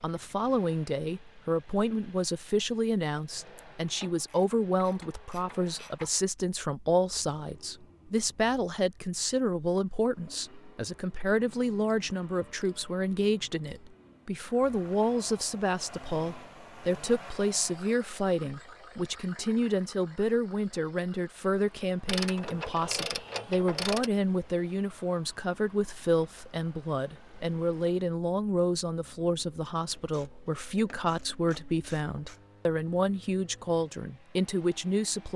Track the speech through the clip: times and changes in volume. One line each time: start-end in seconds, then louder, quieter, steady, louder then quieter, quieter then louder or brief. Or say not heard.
0.0-35.3 steady.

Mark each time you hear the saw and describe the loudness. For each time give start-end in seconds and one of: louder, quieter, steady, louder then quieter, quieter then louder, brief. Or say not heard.
not heard.